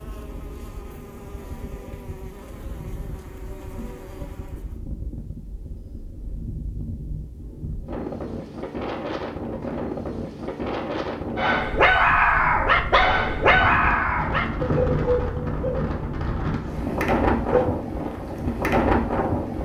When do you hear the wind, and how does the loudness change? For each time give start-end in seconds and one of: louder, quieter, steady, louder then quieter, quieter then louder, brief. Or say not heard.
0.0-19.5 louder.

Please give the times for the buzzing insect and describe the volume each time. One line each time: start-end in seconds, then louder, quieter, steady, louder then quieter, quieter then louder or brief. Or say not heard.
0.0-4.8 steady.